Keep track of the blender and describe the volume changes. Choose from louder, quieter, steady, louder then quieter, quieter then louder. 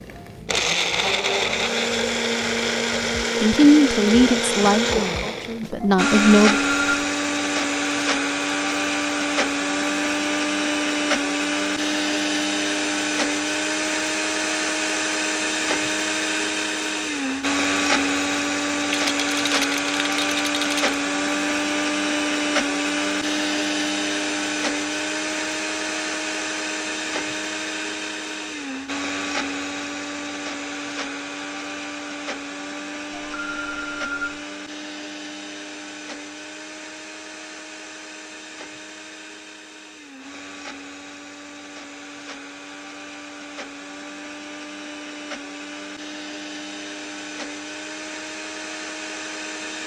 quieter.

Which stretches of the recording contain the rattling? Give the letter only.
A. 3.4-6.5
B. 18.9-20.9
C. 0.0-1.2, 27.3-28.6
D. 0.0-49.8
B.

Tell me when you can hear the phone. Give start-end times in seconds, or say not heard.
5.8-7.0, 33.1-34.5.